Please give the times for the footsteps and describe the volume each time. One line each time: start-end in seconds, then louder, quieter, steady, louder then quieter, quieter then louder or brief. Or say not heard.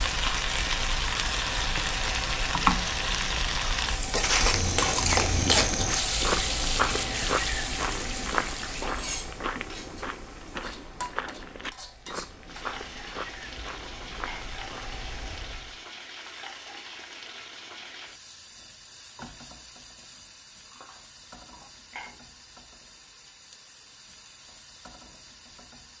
4.2-15.1 quieter.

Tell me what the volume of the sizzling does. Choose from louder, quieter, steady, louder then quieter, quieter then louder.
quieter.